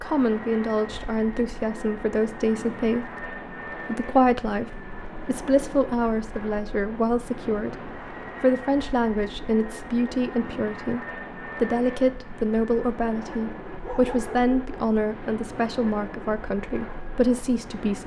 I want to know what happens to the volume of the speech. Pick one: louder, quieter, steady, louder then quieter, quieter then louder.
steady.